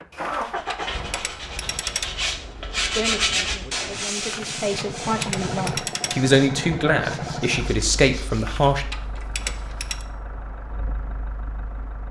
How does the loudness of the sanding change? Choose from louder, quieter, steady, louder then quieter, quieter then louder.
louder then quieter.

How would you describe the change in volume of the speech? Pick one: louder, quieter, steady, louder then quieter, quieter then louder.
louder.